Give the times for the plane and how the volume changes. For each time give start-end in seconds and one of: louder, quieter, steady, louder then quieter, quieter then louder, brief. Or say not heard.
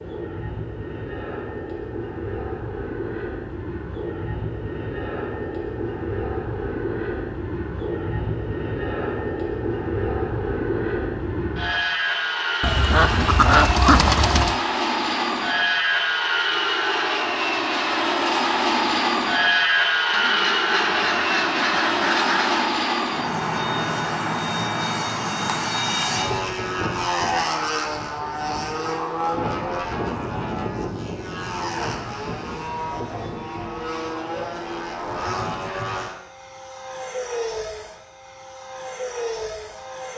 0.0-40.1 louder then quieter.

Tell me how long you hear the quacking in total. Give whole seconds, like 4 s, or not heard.
5 s.